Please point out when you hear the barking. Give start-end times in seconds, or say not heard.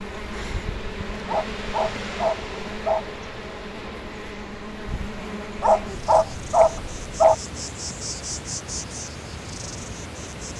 1.2-3.0, 5.6-7.3.